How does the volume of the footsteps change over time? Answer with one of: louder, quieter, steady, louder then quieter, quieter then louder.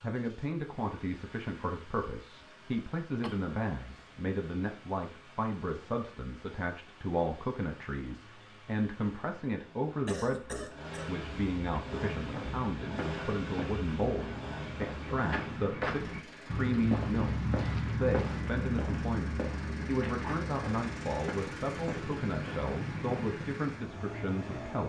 louder then quieter.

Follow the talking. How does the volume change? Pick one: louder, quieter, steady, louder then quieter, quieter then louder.
steady.